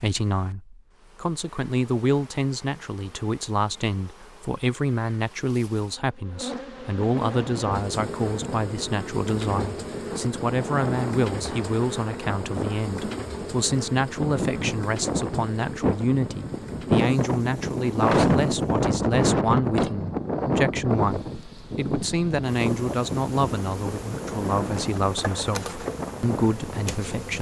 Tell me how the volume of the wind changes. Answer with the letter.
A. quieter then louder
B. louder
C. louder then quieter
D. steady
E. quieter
C.